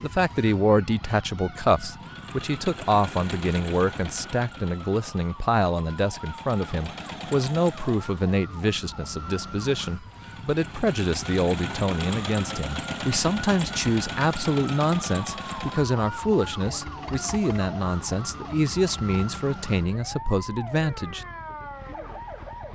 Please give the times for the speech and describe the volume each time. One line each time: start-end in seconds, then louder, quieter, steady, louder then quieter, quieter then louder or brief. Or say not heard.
0.0-21.2 steady.